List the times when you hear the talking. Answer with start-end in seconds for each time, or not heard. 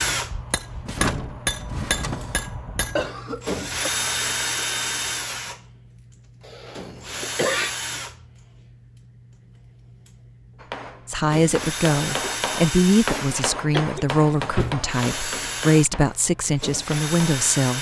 11.1-17.7.